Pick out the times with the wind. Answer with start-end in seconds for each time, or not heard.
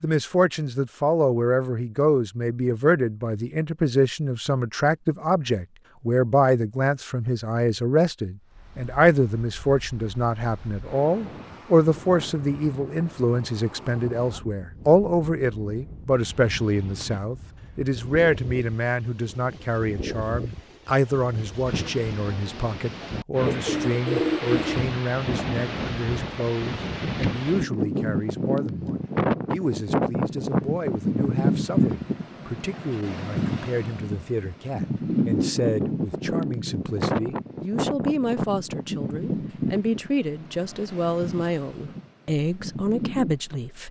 8.5-43.7.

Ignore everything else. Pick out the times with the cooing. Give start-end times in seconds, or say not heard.
23.4-24.9.